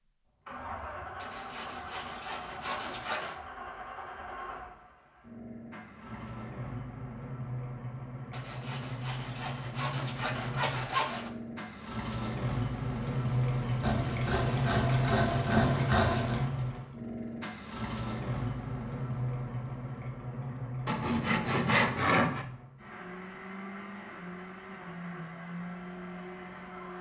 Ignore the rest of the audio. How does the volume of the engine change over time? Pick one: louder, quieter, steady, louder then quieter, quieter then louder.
louder then quieter.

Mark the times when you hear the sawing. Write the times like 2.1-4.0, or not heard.
1.2-3.4, 8.3-11.3, 13.8-16.4, 20.9-22.4.